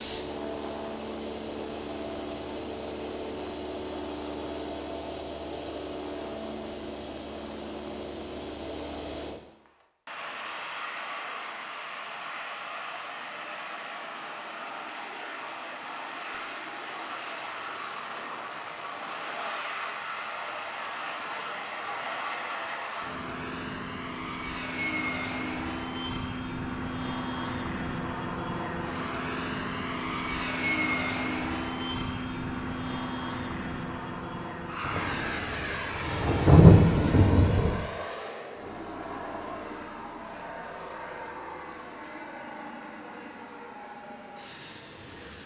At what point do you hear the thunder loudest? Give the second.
37 s.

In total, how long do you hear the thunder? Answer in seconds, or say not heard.
3 s.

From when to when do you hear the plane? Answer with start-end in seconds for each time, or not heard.
0.0-45.4.